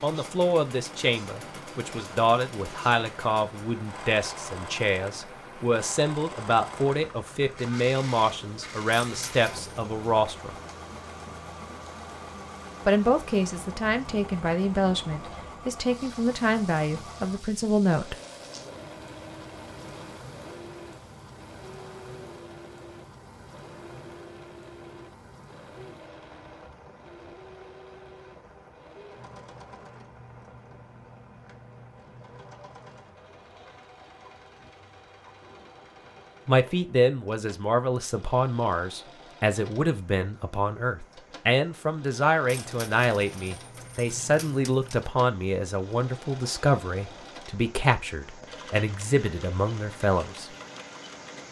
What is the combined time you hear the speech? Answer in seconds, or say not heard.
30 s.